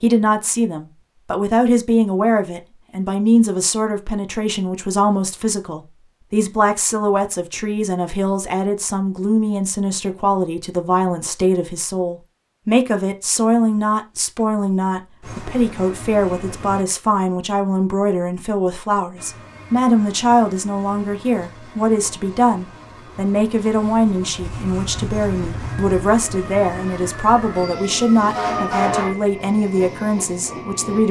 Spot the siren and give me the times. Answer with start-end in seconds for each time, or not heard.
24.4-29.1.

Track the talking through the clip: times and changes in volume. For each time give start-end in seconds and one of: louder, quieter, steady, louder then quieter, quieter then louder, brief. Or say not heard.
0.0-31.0 steady.